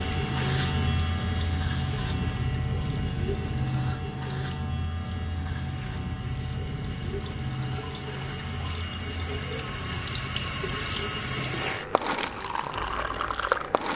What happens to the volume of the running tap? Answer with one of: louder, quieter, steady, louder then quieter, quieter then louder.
quieter then louder.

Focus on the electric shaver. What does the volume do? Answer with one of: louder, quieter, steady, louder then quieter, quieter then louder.
quieter.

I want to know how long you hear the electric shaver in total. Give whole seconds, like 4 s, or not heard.
14 s.